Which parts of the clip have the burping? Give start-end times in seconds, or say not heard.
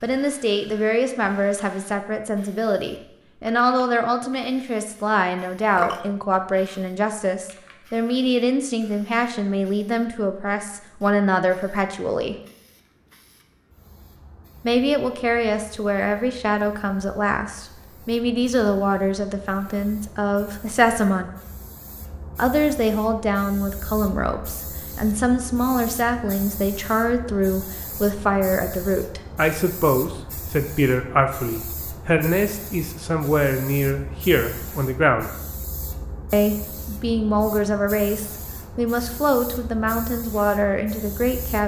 5.8-6.8.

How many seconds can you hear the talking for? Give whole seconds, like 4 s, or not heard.
37 s.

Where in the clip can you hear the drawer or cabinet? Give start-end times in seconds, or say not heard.
not heard.